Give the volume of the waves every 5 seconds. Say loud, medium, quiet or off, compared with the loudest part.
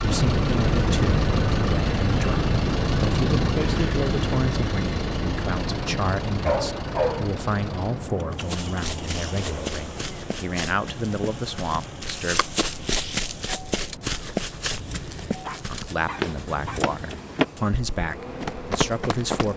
loud, medium, quiet, quiet.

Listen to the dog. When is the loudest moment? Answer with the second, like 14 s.
7 s.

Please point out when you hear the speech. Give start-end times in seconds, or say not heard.
0.0-12.4, 15.7-19.5.